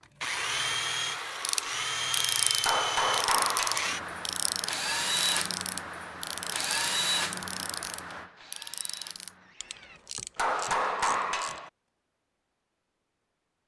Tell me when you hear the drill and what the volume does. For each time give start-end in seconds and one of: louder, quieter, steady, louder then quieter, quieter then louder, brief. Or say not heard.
0.2-10.0 quieter.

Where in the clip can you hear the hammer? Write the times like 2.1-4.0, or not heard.
2.6-4.0, 10.3-11.7.